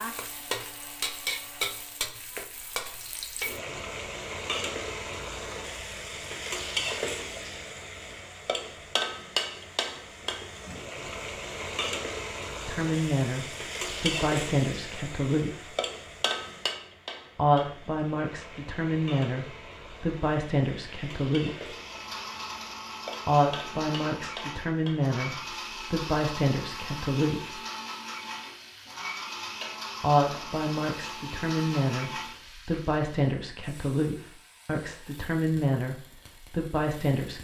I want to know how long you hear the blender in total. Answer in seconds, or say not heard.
13 s.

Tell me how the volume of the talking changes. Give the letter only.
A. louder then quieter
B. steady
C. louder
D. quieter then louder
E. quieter
B.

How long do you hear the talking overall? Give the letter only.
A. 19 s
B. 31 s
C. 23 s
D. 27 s
A.